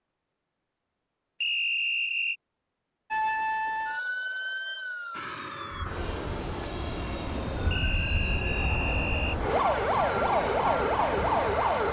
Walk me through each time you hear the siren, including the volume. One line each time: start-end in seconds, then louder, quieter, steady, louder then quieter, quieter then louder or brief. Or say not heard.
3.1-11.8 quieter then louder.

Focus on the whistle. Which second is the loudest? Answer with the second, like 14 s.
2 s.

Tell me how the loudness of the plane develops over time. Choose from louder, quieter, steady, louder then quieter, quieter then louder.
steady.